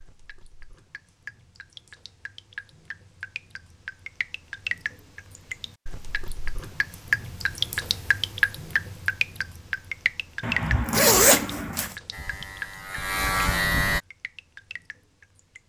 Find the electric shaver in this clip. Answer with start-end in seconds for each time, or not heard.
12.1-14.0.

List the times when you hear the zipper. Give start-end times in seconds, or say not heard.
10.4-11.9.